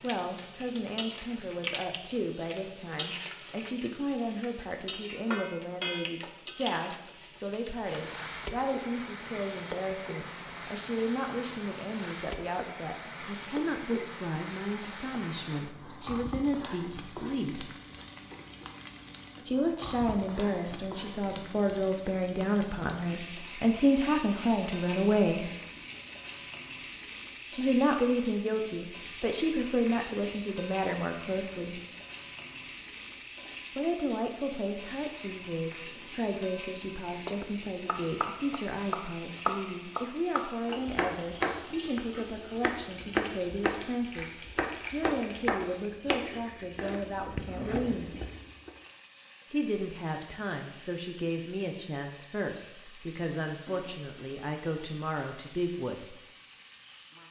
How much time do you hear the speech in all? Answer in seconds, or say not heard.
49 s.